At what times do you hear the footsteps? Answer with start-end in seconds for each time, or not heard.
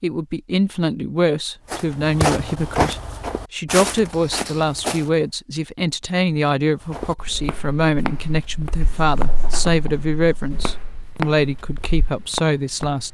1.7-5.2, 6.8-13.0.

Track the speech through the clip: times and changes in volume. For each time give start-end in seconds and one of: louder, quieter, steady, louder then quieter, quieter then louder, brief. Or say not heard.
0.0-13.0 steady.